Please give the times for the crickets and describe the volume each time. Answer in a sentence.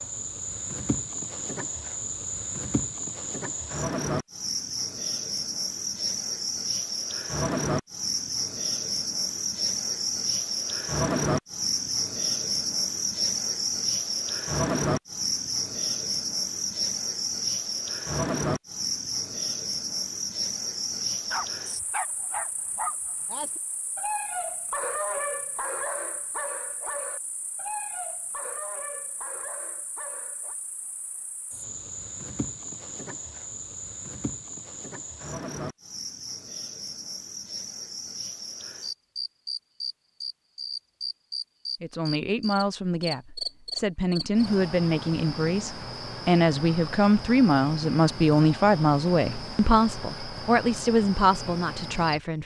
You can hear the crickets from 0.0 to 52.4 s, getting quieter then louder.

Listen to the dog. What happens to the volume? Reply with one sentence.
The loudness of the dog goes down.